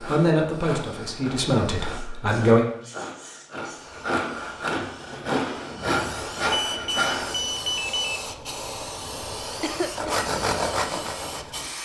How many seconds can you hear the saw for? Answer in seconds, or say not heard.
9 s.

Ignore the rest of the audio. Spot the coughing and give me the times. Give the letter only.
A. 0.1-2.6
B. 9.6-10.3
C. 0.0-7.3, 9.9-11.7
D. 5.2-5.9
B.